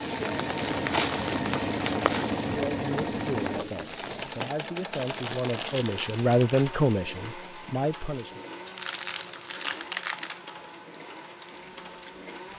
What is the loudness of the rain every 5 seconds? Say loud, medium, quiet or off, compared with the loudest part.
loud, quiet, quiet.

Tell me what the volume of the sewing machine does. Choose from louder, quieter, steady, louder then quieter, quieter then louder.
quieter.